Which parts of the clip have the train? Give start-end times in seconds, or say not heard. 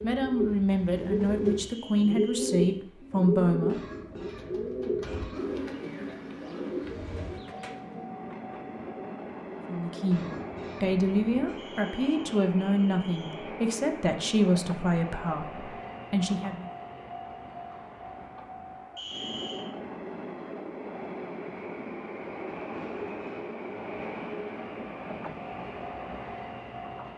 0.0-1.8, 6.8-27.1.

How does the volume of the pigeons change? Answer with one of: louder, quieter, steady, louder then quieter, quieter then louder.
quieter.